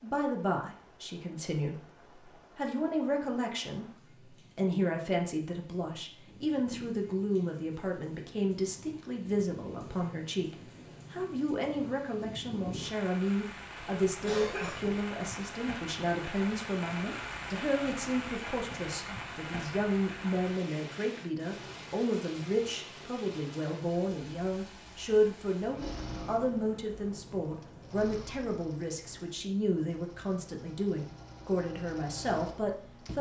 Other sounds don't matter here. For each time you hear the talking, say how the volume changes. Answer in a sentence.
The talking can be heard from 0.0 to 33.1 s, at a steady volume.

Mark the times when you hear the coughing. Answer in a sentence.
The coughing can be heard from 13.8 to 15.0 s.